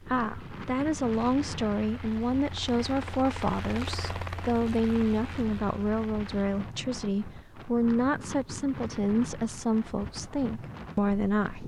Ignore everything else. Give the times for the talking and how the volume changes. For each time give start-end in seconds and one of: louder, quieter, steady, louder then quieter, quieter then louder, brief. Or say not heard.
0.0-11.6 steady.